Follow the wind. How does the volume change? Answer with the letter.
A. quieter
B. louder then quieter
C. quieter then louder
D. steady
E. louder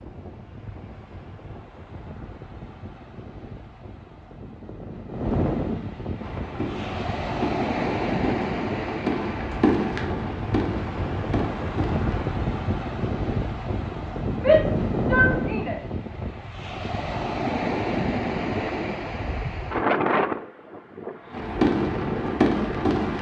E.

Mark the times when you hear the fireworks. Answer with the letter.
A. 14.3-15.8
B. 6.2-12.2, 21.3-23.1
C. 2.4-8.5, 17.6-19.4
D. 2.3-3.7
B.